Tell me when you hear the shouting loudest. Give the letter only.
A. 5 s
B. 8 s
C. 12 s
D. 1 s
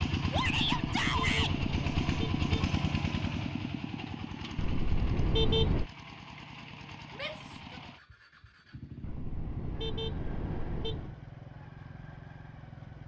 D.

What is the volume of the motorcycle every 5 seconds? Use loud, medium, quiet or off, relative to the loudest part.
loud, quiet, quiet.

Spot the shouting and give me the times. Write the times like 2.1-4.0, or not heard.
0.3-1.6, 7.2-7.8.